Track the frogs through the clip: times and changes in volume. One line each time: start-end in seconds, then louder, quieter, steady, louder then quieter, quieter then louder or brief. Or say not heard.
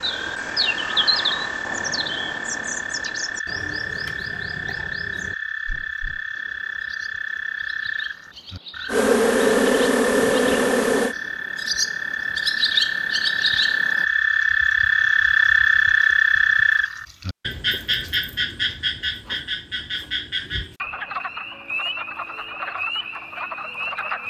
0.0-24.2 louder then quieter.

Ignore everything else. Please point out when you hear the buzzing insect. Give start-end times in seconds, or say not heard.
8.8-11.2.